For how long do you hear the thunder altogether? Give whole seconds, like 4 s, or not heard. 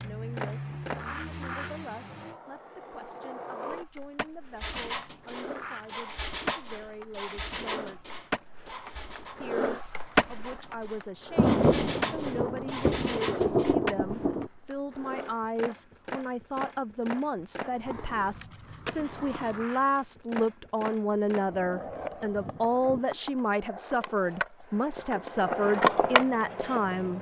3 s.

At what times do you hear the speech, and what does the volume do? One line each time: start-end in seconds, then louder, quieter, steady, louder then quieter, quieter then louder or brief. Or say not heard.
0.0-8.2 steady
9.4-27.1 louder.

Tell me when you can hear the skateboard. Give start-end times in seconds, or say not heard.
0.0-27.1.